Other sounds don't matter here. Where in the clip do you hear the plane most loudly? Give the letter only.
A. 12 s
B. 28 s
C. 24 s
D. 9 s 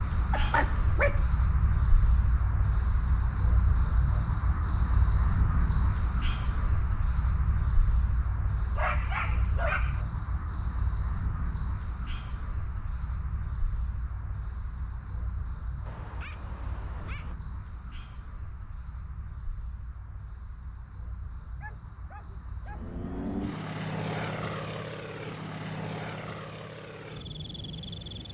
C.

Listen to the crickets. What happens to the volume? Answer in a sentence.
The volume of the crickets goes down.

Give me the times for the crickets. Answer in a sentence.
The crickets can be heard from 0.0 to 28.2 s.